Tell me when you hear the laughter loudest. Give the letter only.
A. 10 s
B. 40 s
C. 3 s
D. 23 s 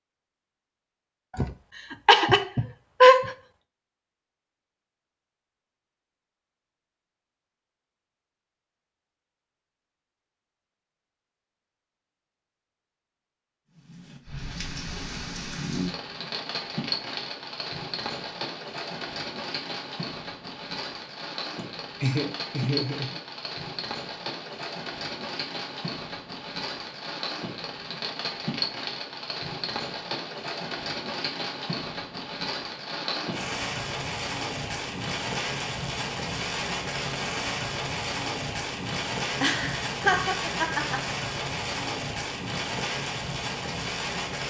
C.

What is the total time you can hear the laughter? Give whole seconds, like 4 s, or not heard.
5 s.